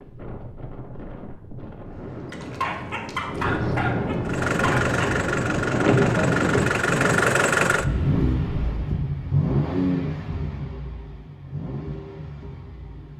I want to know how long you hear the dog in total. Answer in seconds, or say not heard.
3 s.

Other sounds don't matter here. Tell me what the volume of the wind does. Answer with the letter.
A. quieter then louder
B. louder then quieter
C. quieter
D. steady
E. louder
B.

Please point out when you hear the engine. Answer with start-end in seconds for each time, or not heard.
4.2-13.1.